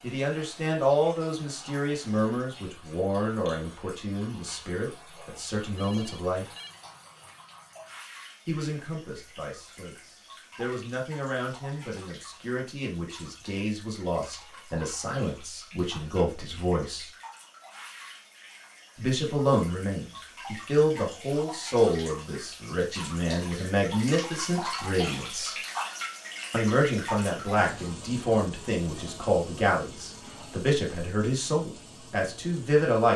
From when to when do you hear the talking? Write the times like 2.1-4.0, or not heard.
0.0-6.5, 8.4-17.1, 18.9-25.6, 26.5-33.1.